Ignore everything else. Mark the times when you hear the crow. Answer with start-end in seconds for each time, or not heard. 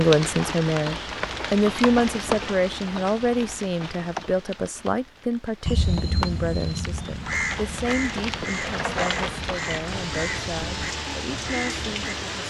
5.7-12.2.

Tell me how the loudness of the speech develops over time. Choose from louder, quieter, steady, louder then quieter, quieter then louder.
quieter.